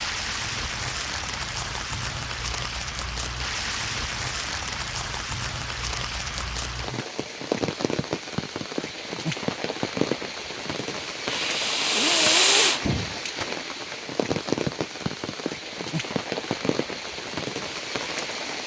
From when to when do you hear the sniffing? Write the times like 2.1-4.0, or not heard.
11.2-13.2.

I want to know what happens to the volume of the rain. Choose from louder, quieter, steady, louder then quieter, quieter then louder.
steady.